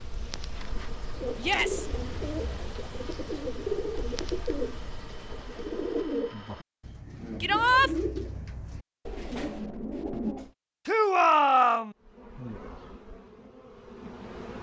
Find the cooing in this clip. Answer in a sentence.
You can hear the cooing from 0.5 to 10.5 s.